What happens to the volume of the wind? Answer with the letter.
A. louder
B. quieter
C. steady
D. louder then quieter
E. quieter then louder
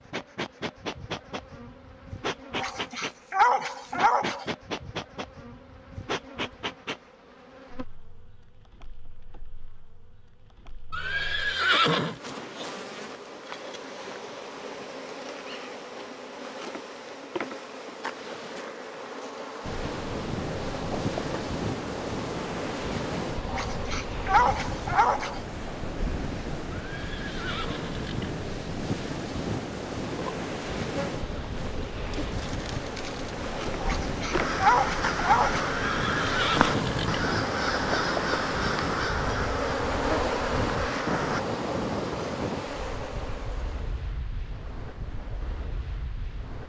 C.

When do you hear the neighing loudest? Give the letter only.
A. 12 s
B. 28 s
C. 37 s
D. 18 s
A.